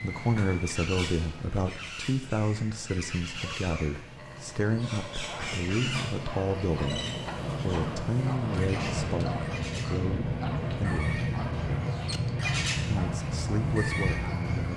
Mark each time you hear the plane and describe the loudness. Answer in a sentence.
The plane can be heard from 0.0 to 14.7 s, getting louder.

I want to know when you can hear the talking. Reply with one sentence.
You can hear the talking from 0.0 to 11.2 s and from 12.9 to 14.7 s.